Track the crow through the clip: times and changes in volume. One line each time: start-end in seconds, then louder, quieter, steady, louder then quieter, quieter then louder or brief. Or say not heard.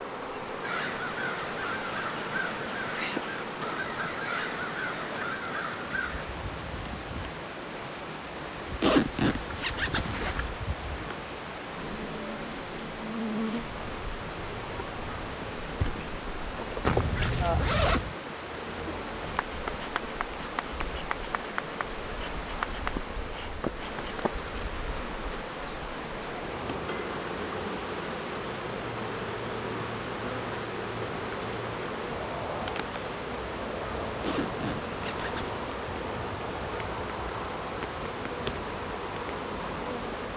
0.6-6.2 steady.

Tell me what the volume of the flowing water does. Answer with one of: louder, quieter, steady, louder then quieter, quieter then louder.
steady.